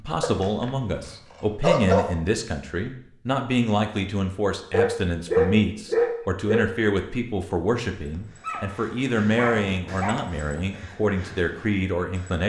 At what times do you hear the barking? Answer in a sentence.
The barking can be heard from 0.2 to 2.1 s, from 4.7 to 6.7 s and from 8.4 to 10.3 s.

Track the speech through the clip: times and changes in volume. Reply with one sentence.
You can hear the speech from 0.0 to 12.4 s, at a steady volume.